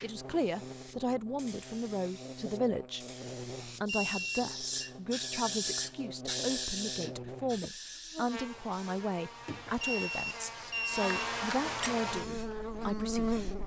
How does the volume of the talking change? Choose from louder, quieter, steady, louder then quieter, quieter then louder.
steady.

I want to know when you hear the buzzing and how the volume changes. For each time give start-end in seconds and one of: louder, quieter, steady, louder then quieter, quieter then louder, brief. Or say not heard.
0.0-13.6 louder.